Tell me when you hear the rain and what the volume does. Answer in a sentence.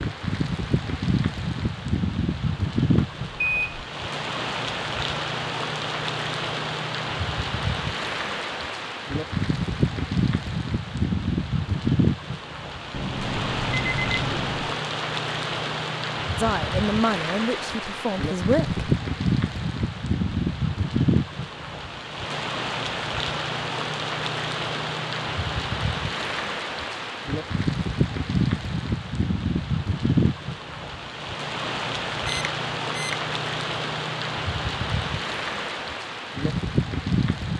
The rain can be heard from 0.0 to 37.5 s, at a steady volume.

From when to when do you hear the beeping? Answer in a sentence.
The beeping can be heard from 3.0 to 3.8 s, from 12.9 to 14.8 s and from 32.2 to 33.1 s.